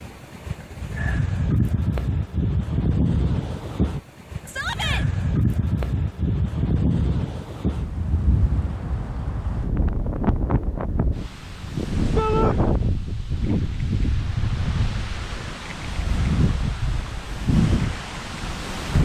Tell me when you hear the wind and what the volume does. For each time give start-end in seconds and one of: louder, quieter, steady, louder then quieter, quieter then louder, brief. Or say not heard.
0.0-19.0 steady.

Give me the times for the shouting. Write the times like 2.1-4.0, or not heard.
4.5-5.0, 12.2-12.6.